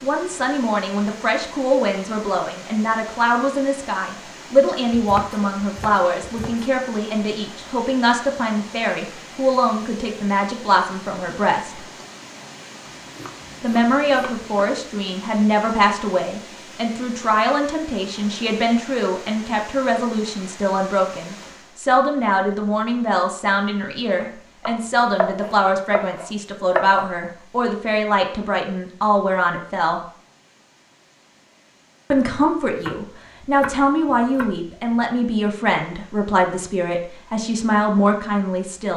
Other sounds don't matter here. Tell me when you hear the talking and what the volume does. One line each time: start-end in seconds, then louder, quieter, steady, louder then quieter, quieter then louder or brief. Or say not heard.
0.0-11.8 steady
13.6-30.0 steady
32.1-38.9 steady.